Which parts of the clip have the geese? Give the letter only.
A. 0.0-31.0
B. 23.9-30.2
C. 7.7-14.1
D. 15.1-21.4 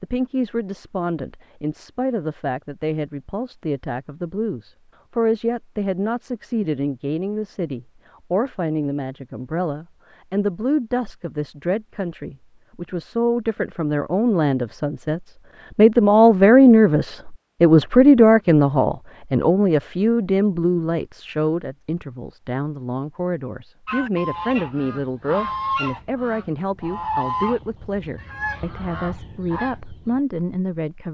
B.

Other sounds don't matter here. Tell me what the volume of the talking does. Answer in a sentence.
The volume of the talking goes up, then down.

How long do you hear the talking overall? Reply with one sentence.
The talking can be heard for 31 seconds in total.